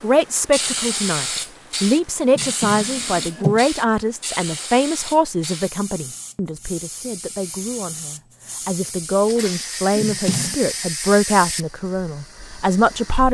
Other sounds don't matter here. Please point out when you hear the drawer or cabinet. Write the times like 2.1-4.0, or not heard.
2.3-3.6, 9.9-10.6.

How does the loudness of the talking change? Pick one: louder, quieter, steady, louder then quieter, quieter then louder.
quieter then louder.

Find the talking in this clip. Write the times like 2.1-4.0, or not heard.
0.0-13.3.